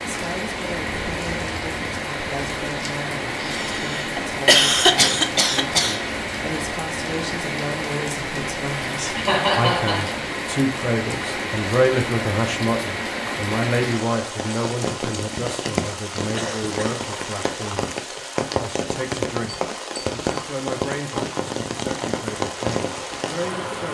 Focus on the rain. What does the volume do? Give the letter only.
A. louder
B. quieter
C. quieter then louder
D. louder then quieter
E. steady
E.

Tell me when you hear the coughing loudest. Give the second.
5 s.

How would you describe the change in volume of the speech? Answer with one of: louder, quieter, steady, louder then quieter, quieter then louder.
louder then quieter.